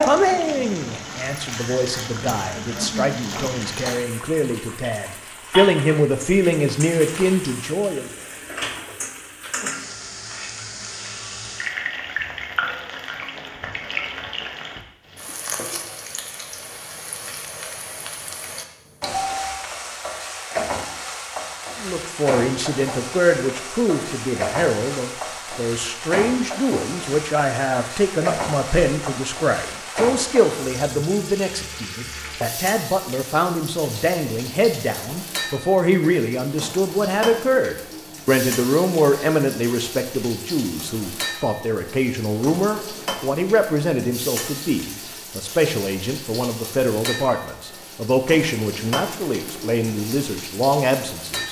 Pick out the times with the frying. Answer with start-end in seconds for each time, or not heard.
0.0-51.4.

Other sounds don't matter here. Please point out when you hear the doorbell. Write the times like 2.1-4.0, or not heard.
19.1-19.7.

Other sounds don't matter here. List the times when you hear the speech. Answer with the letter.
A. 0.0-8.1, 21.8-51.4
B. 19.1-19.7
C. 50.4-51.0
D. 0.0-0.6
A.